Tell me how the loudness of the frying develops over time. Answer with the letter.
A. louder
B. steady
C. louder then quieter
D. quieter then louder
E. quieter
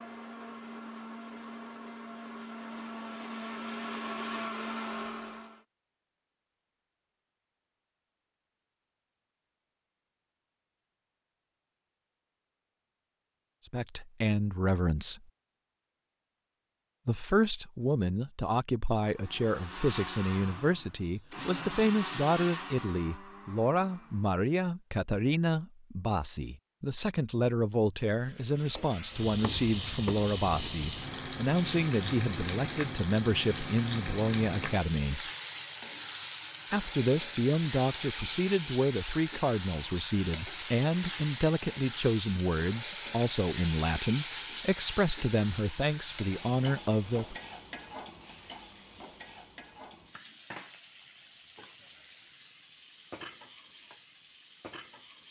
E.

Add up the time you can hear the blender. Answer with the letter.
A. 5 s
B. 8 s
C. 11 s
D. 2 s
C.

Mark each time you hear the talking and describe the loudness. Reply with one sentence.
You can hear the talking briefly from 13.7 to 15.2 s; from 17.1 to 35.3 s, at a steady volume; and from 36.7 to 47.4 s, at a steady volume.